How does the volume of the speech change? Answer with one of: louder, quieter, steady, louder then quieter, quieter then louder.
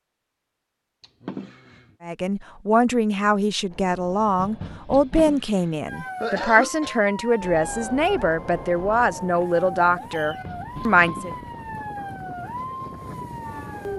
steady.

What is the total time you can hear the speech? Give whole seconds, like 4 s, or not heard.
9 s.